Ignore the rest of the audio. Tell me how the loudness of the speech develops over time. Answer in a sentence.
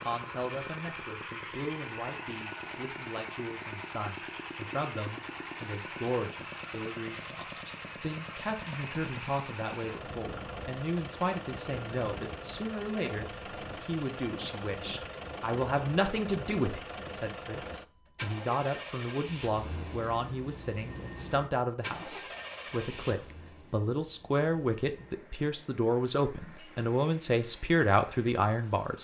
The volume of the speech goes up.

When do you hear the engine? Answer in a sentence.
You can hear the engine from 0.0 to 28.9 s.